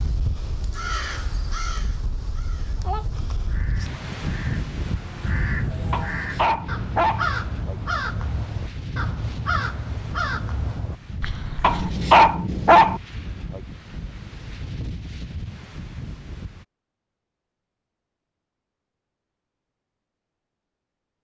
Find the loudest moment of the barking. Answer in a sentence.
The volume of the barking peaks at 12 seconds.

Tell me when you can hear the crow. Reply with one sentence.
You can hear the crow from 0.8 to 12.1 s.